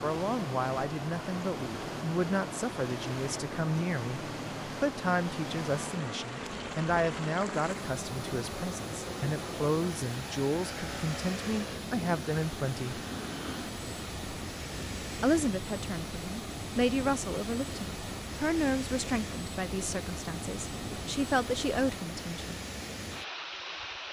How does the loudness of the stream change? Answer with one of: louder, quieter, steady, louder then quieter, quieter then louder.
steady.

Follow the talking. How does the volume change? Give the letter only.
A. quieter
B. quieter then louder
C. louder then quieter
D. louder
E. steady
E.